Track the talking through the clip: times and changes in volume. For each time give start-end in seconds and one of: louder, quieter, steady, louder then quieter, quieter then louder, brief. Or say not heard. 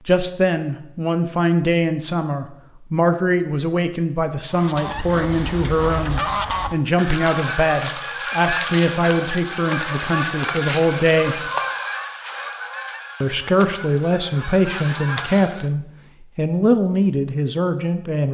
0.1-11.5 steady
13.2-18.2 steady.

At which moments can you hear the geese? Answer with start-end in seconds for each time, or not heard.
4.5-15.7.